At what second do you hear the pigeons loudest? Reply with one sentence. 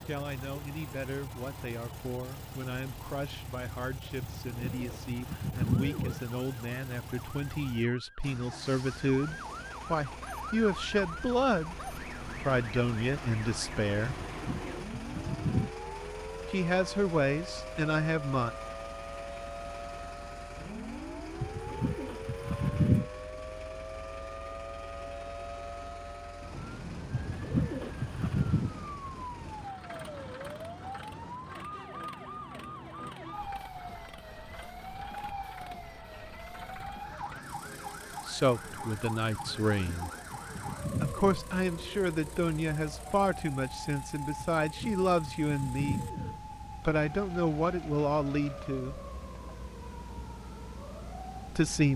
The loudest moment of the pigeons is at 23 seconds.